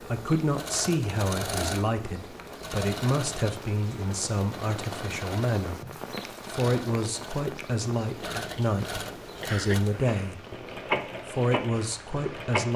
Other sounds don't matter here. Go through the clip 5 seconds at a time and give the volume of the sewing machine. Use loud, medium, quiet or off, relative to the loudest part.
loud, medium, loud.